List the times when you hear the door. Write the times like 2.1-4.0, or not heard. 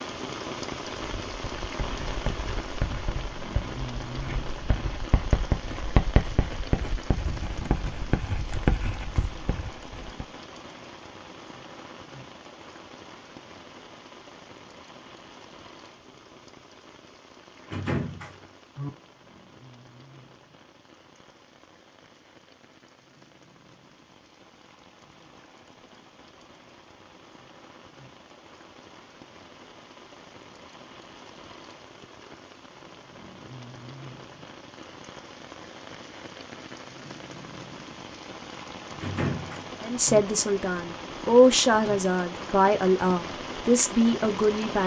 17.6-18.9, 39.0-40.2.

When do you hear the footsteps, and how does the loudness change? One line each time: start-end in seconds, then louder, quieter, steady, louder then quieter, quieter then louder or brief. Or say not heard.
not heard.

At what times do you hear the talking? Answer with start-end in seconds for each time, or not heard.
39.8-44.8.